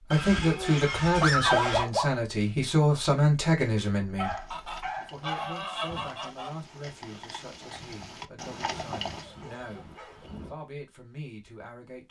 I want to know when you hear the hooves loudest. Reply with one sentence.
The volume of the hooves peaks at 9 seconds.